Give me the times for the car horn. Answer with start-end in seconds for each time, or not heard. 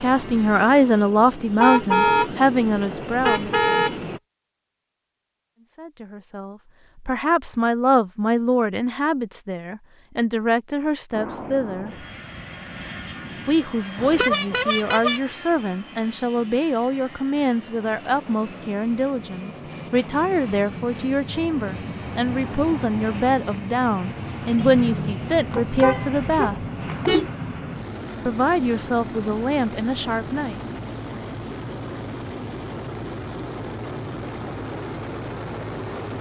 1.6-2.3, 3.2-4.0, 13.9-15.2, 24.6-27.3.